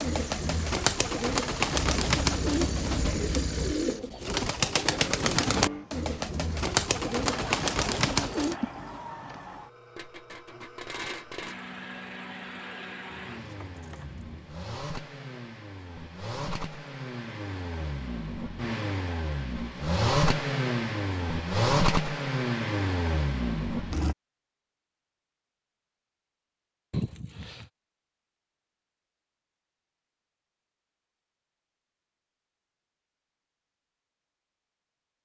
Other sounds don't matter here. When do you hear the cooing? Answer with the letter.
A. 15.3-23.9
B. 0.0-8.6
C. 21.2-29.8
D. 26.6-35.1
B.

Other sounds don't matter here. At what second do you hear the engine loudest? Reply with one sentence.
The volume of the engine peaks at 22 seconds.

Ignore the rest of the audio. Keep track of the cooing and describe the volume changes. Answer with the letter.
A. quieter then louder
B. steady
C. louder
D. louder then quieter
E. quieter
B.